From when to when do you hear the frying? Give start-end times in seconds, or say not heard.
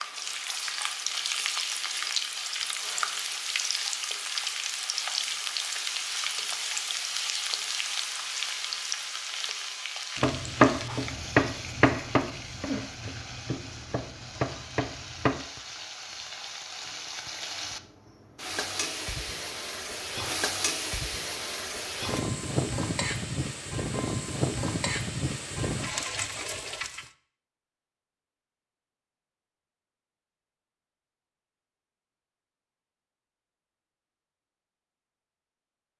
0.0-27.1.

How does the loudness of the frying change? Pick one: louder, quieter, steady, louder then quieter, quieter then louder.
quieter then louder.